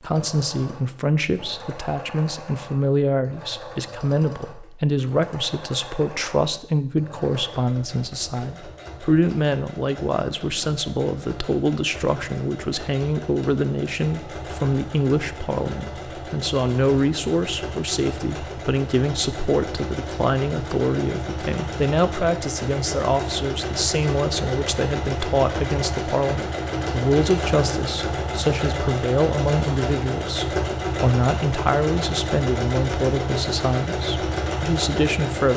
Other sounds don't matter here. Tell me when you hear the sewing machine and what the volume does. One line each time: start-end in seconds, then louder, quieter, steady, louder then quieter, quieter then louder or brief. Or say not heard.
0.0-35.5 louder.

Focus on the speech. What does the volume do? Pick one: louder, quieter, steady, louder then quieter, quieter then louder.
steady.